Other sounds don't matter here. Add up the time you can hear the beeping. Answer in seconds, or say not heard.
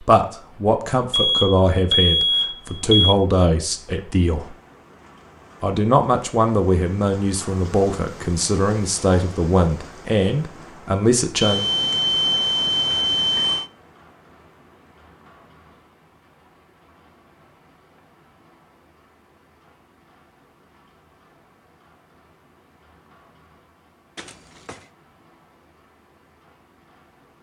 5 s.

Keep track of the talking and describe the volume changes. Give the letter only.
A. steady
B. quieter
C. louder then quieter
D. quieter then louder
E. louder
A.